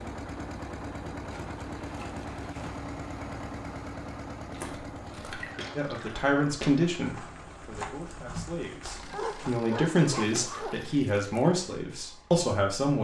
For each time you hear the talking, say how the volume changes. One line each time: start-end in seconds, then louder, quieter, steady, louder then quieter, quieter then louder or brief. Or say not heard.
5.8-12.9 quieter then louder.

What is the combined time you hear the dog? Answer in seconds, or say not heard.
2 s.